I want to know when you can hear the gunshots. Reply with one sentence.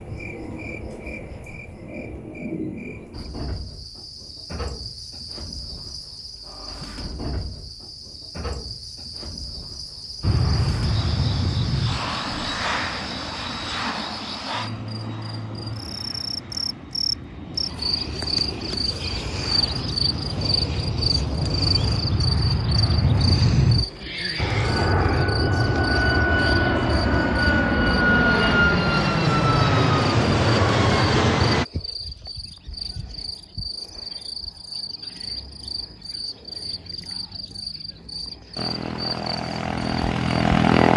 You can't hear the gunshots here.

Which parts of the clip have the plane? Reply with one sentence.
You can hear the plane from 10.2 to 31.6 s and from 38.5 to 40.9 s.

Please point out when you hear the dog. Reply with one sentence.
The dog can't be heard in this clip.